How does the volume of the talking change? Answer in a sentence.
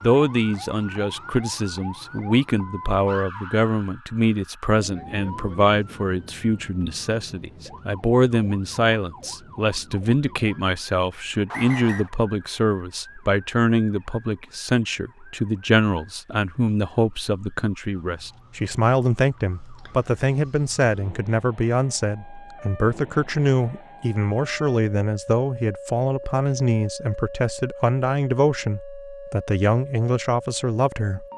The volume of the talking stays about the same.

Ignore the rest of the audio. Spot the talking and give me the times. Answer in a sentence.
You can hear the talking from 0.0 to 31.2 s.